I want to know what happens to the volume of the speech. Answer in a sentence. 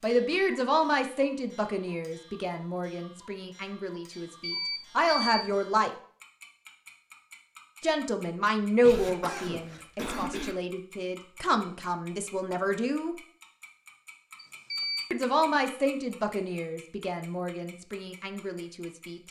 The loudness of the speech goes down.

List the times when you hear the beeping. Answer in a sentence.
The beeping can be heard from 4.1 to 5.5 s and from 14.3 to 15.1 s.